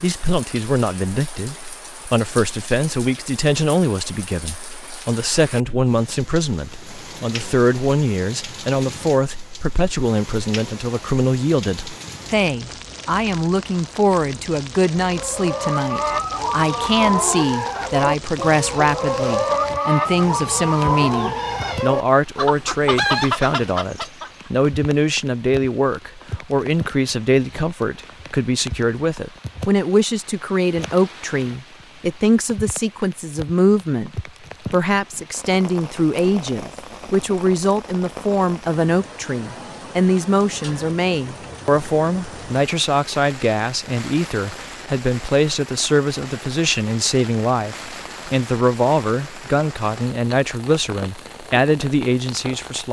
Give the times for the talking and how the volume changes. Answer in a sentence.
You can hear the talking from 0.0 to 52.8 s, at a steady volume.